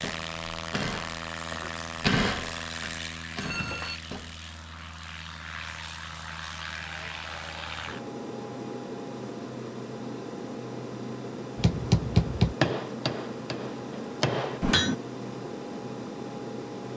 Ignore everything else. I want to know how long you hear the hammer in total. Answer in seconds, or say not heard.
8 s.